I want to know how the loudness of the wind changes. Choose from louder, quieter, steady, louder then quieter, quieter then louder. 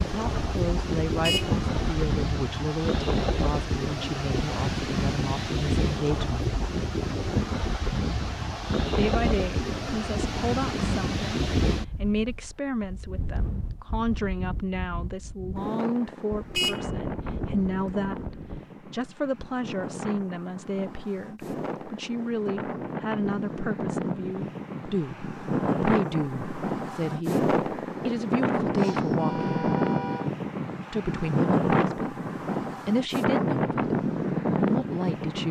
quieter then louder.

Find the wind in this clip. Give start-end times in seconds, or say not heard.
0.0-35.4.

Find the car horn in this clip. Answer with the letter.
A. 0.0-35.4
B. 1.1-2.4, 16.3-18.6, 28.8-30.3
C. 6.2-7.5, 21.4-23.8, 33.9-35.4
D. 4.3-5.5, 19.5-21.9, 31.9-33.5
B.